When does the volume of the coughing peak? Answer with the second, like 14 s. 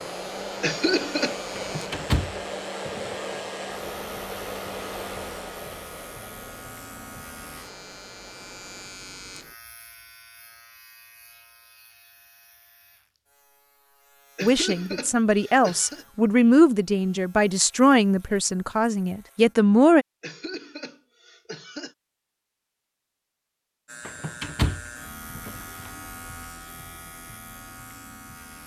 1 s.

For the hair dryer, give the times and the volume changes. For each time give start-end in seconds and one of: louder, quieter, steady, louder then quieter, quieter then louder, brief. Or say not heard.
0.0-8.9 quieter.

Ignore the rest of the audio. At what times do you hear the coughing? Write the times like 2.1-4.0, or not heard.
0.6-1.4, 14.3-16.1, 20.2-21.9.